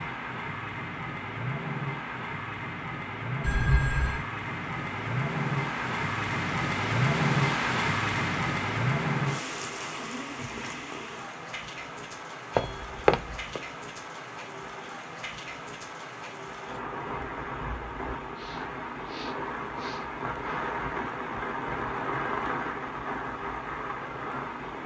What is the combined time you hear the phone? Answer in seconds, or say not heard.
2 s.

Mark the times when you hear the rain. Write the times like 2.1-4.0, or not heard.
0.0-24.8.